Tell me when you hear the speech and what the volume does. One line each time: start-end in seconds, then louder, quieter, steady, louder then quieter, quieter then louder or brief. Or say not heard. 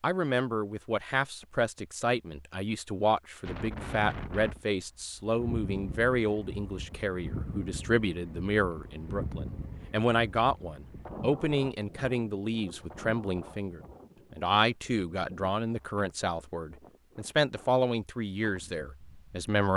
0.0-19.7 steady.